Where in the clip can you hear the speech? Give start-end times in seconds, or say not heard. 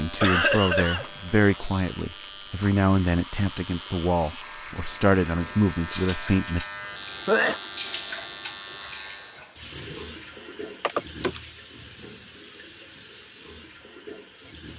0.0-6.7.